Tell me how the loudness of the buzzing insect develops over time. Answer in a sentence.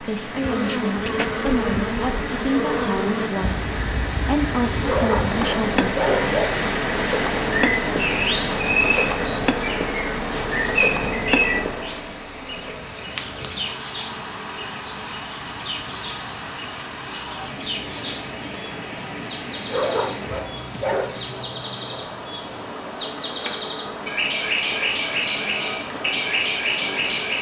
The volume of the buzzing insect goes down.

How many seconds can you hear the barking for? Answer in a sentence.
The barking can be heard for 3 seconds in total.